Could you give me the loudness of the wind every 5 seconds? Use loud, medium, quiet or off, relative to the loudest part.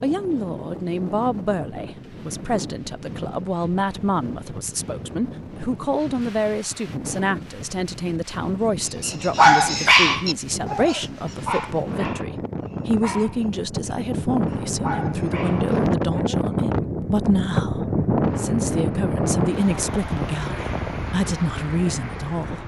quiet, quiet, medium, loud, medium.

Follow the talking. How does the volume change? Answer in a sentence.
The loudness of the talking stays about the same.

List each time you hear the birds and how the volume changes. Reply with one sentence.
The birds can't be heard in this clip.